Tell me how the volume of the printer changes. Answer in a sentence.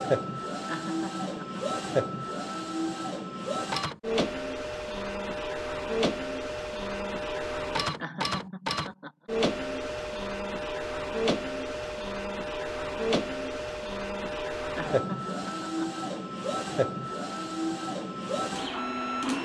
The loudness of the printer stays about the same.